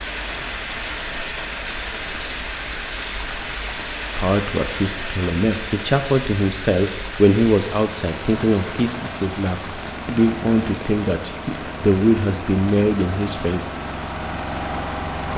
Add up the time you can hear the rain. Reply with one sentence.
You can hear the rain for 15 seconds altogether.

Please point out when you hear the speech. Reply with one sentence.
You can hear the speech from 4.2 to 13.7 s.